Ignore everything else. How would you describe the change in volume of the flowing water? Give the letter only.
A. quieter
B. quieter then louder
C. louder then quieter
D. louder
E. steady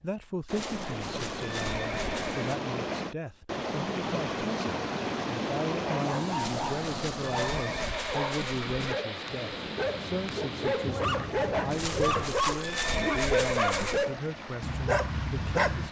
A.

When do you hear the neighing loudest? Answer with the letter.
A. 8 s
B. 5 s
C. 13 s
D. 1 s
C.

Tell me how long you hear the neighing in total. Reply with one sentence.
You can hear the neighing for 7 seconds altogether.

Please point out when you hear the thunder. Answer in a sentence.
The thunder can be heard from 9.2 to 12.3 s.